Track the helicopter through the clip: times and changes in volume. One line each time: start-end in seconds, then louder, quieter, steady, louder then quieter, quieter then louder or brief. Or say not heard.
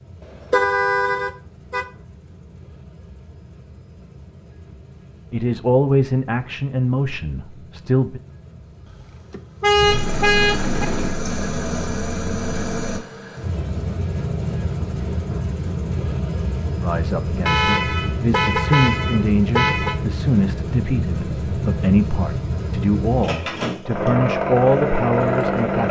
0.0-25.8 louder.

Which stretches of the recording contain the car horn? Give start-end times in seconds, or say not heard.
0.3-1.9, 8.9-10.8, 17.4-19.9.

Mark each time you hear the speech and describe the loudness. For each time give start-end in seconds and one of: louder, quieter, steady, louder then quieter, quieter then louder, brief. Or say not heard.
5.3-8.2 brief
16.8-25.8 steady.